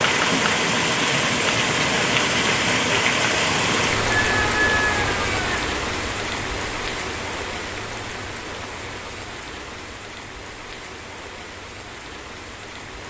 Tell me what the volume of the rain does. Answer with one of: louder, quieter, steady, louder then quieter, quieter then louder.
quieter.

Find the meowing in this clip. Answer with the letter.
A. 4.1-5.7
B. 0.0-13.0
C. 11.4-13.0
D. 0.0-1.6
A.